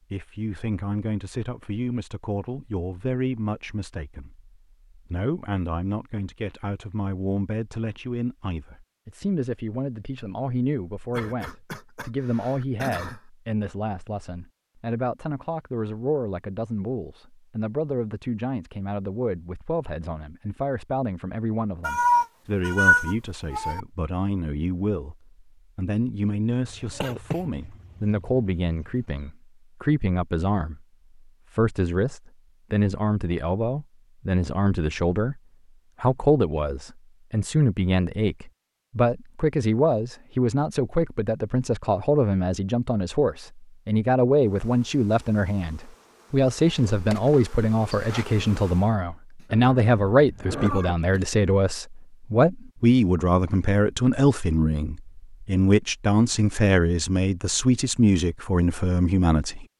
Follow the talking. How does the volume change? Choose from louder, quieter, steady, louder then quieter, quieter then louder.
louder.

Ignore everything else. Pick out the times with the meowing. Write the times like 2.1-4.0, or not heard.
21.8-23.8, 49.5-51.0.